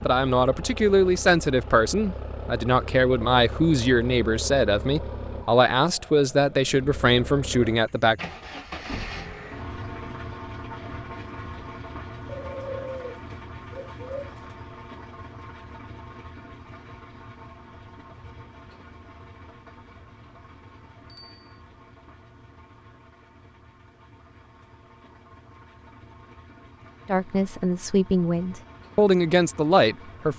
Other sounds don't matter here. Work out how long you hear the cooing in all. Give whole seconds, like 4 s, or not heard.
2 s.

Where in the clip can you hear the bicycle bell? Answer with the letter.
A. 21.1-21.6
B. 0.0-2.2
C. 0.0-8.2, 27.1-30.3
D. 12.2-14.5
A.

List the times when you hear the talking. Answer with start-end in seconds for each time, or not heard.
0.0-8.2, 27.1-30.3.